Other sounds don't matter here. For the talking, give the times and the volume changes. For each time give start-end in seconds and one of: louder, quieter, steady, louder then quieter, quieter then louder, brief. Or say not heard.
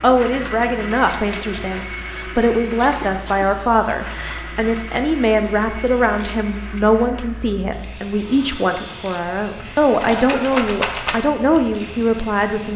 0.0-12.7 steady.